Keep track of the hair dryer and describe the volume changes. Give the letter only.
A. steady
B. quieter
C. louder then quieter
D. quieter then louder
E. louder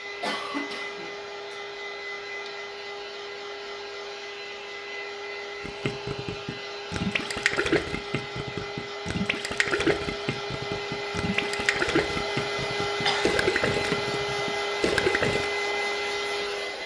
E.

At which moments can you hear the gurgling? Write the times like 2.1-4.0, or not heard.
5.6-15.5.